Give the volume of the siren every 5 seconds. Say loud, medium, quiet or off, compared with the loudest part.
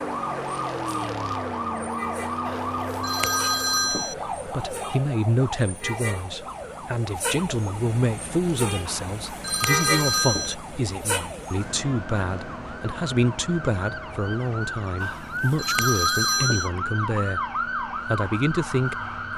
loud, medium, medium, loud.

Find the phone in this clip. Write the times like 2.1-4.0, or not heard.
2.5-4.2, 8.8-10.6, 15.0-16.7.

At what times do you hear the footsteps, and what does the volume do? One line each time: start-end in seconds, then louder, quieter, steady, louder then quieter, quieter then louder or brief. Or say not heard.
not heard.